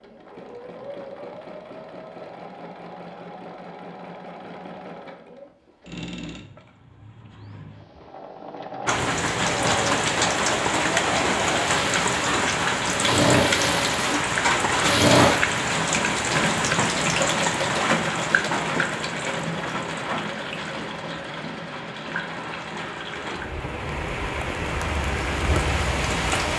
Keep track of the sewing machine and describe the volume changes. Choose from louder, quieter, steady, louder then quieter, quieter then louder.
louder then quieter.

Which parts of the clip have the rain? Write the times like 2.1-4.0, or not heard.
8.8-26.5.